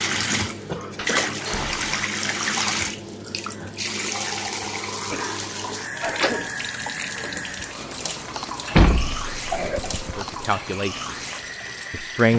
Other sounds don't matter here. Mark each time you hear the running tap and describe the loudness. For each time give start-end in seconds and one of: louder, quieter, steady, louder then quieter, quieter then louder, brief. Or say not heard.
0.0-12.3 quieter.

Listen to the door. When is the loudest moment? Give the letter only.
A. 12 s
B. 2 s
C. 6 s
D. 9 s
D.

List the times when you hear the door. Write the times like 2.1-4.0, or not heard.
0.9-1.9, 6.1-6.7, 8.8-10.2.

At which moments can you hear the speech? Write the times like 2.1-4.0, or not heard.
10.2-11.1, 11.9-12.3.